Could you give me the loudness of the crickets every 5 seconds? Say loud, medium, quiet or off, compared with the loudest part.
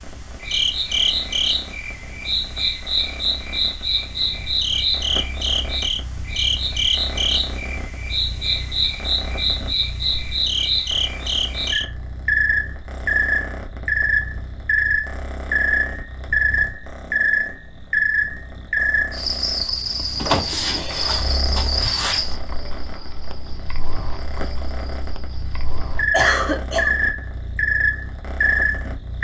loud, loud, loud, loud, medium, loud.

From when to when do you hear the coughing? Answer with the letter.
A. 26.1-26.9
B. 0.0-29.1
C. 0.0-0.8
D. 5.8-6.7
A.